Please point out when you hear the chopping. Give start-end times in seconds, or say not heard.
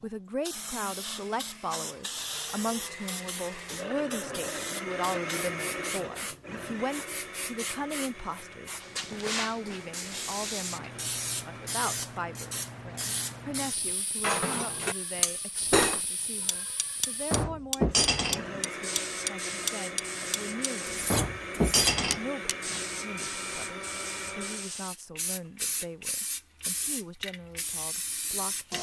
not heard.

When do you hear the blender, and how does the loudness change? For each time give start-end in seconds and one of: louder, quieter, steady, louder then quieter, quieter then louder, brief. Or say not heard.
0.0-11.8 louder then quieter
17.8-24.8 steady.